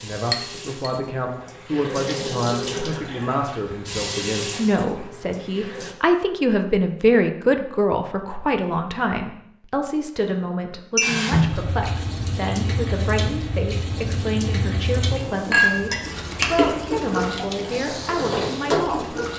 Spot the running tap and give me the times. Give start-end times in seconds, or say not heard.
0.0-6.0, 11.0-19.3.